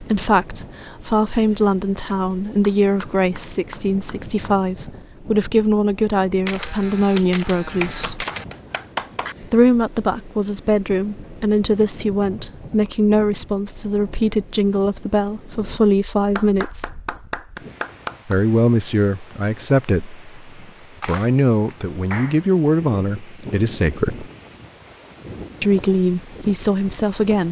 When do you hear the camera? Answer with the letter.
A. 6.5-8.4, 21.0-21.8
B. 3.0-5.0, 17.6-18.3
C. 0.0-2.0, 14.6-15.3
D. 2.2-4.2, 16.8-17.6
A.